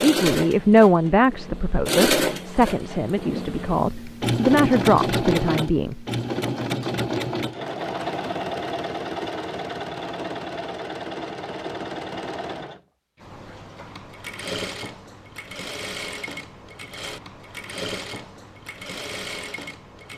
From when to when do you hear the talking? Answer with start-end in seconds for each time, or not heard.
0.0-6.0.